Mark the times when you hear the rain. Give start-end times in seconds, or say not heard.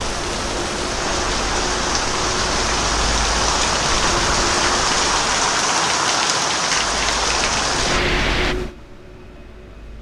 0.0-8.6.